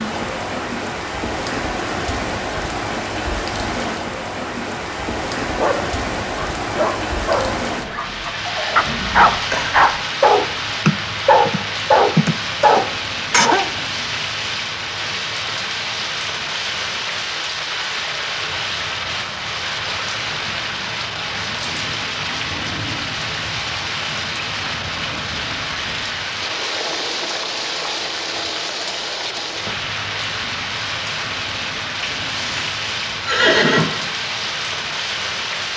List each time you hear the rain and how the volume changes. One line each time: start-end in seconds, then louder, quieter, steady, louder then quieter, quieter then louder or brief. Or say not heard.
0.0-35.7 steady.